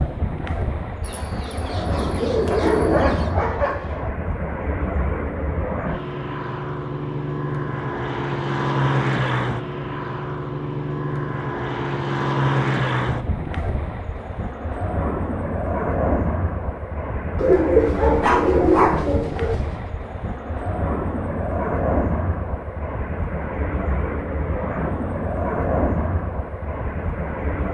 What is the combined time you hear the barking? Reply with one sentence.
You can hear the barking for 4 seconds altogether.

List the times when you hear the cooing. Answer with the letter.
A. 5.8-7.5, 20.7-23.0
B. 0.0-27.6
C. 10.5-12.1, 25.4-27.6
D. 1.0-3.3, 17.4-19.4
D.